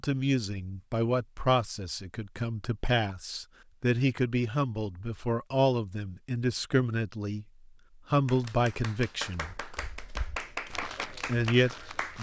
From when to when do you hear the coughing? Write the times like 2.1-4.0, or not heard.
not heard.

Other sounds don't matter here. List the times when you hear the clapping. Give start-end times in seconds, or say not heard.
8.2-12.1.